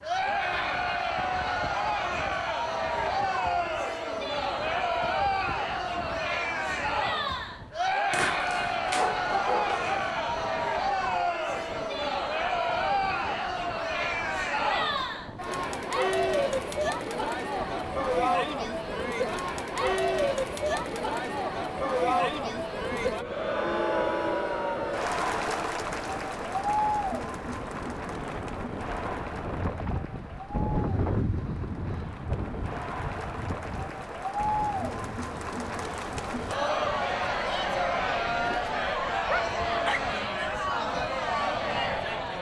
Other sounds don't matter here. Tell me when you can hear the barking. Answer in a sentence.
The barking can be heard from 8.1 to 10.1 s and from 38.4 to 40.0 s.